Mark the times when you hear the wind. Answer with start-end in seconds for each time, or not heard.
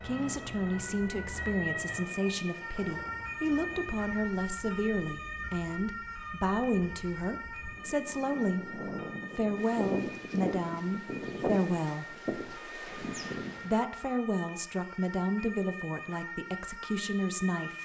0.0-13.8.